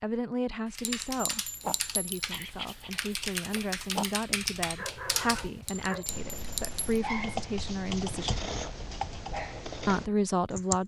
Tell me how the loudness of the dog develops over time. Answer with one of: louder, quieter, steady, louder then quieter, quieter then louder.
steady.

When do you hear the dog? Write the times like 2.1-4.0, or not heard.
1.6-10.0.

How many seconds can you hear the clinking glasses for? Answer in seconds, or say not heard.
3 s.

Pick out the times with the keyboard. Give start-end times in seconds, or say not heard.
0.7-10.8.